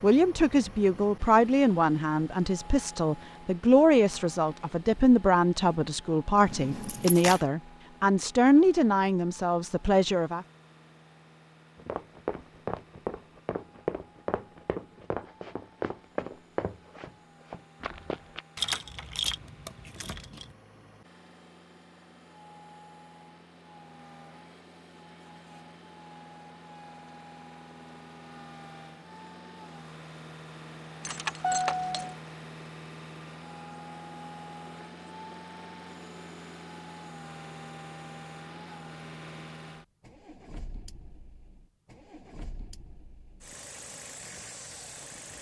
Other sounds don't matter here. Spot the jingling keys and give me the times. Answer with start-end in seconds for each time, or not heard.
6.5-7.5, 18.6-20.5, 31.0-32.1.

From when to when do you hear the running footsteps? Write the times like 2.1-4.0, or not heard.
11.8-18.4.